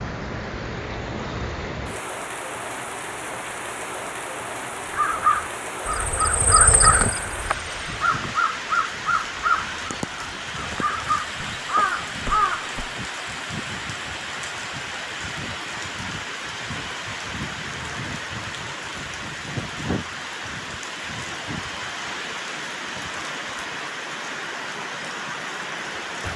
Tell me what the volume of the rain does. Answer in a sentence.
The loudness of the rain stays about the same.